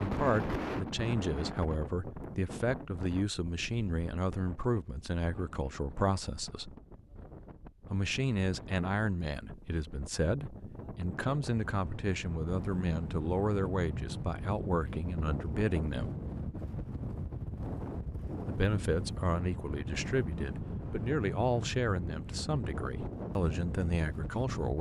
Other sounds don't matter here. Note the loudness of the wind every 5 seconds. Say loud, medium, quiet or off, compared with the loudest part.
loud, medium, loud, loud, loud.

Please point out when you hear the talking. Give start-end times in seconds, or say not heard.
0.0-6.8, 7.9-16.1, 18.4-24.7.